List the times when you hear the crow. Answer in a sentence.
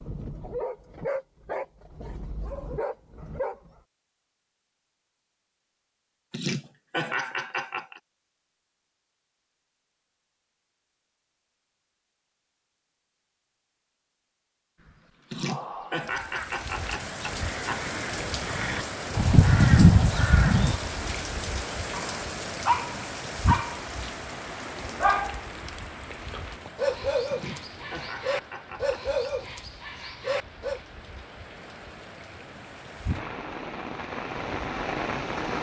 You can hear the crow from 14.8 to 20.8 s.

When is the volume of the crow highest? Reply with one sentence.
The volume of the crow peaks at 20 seconds.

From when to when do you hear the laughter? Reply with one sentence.
The laughter can be heard from 6.3 to 8.0 s, from 15.3 to 17.8 s and from 27.3 to 29.1 s.